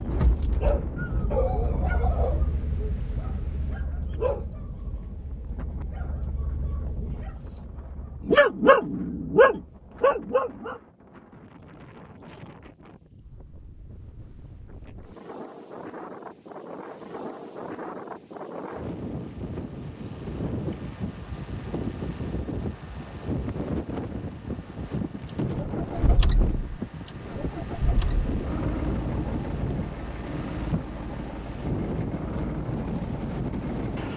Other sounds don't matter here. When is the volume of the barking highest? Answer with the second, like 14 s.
9 s.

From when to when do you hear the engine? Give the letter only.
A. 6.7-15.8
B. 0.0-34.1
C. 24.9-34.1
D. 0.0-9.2
C.